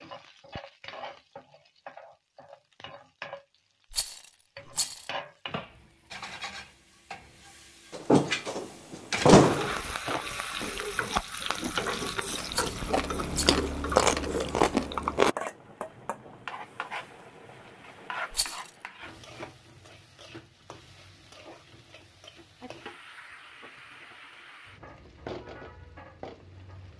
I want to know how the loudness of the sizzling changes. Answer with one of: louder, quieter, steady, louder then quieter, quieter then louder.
louder then quieter.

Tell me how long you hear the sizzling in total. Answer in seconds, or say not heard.
27 s.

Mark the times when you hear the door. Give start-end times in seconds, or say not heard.
8.0-9.8.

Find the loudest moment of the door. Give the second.
9 s.